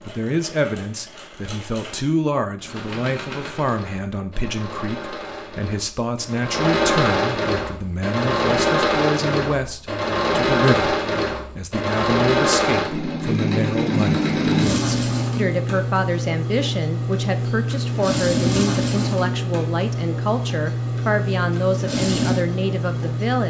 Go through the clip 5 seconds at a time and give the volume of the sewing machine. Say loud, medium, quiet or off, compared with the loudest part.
quiet, loud, loud, loud, loud.